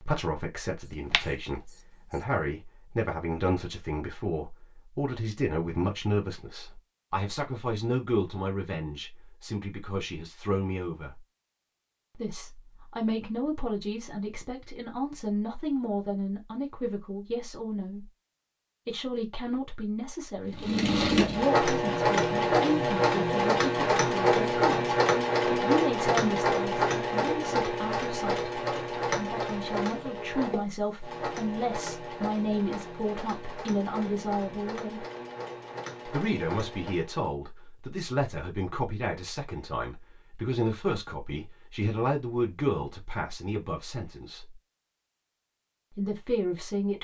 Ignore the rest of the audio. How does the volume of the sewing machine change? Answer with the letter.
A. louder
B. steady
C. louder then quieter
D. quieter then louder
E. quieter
E.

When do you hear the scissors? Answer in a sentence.
You can hear the scissors from 0.8 to 2.2 s.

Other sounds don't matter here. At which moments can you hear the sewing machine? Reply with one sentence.
The sewing machine can be heard from 20.5 to 37.3 s.